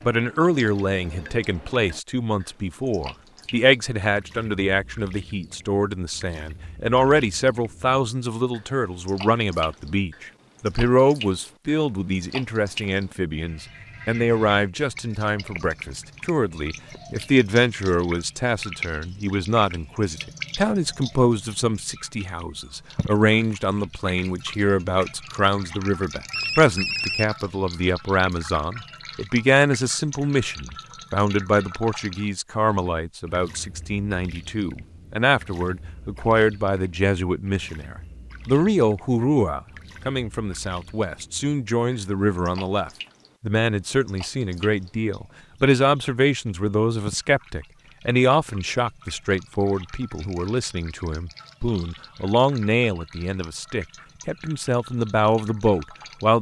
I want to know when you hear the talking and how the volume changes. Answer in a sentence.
You can hear the talking from 0.0 to 56.3 s, at a steady volume.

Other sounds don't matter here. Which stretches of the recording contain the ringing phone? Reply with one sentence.
You can hear the ringing phone from 0.4 to 1.8 s, from 26.3 to 27.4 s and from 51.4 to 52.0 s.